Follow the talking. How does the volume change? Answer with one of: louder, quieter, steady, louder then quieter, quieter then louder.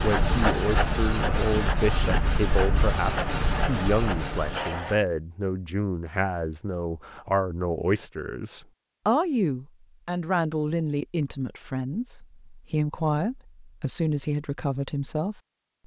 steady.